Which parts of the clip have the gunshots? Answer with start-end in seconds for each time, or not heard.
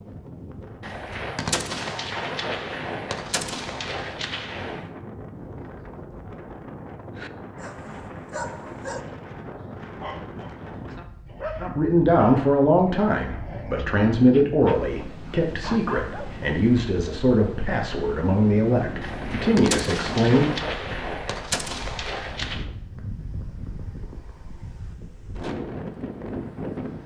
0.8-4.9, 19.0-22.6.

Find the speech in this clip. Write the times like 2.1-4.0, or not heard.
11.6-20.5.